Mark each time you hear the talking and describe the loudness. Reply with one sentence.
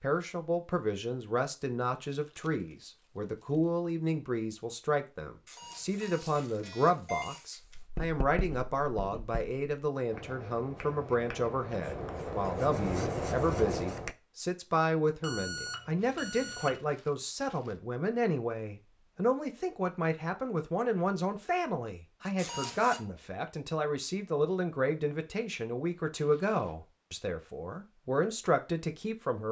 The talking can be heard from 0.0 to 29.4 s, at a steady volume.